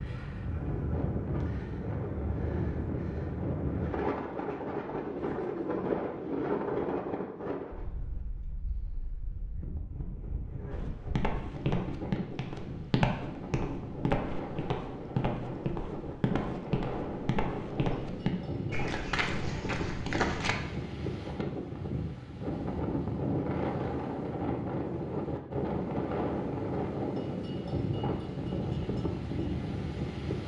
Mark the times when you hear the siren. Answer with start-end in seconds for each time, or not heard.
not heard.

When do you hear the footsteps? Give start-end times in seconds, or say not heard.
10.7-20.6.